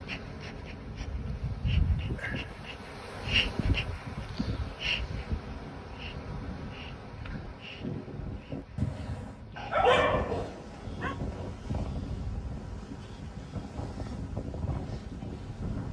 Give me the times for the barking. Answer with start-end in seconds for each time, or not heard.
9.6-11.2.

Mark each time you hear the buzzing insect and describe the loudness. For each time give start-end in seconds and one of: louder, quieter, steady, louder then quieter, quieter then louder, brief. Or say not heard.
0.0-15.8 quieter.